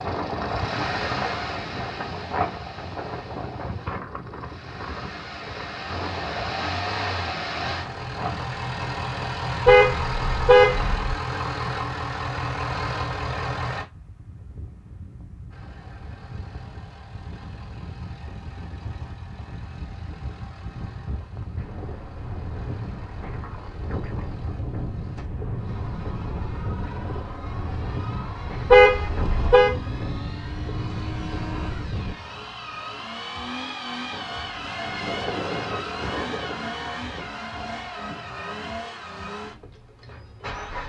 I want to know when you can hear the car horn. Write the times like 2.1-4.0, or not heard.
9.7-11.2, 28.7-29.7.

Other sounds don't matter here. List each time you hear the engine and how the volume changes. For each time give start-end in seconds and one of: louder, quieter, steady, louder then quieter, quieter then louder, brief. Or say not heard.
0.0-13.8 quieter then louder
15.5-40.8 louder.